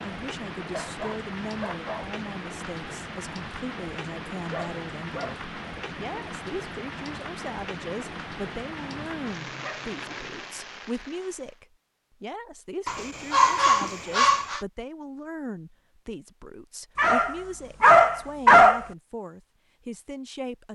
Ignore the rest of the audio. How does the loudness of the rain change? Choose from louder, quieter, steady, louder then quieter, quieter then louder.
steady.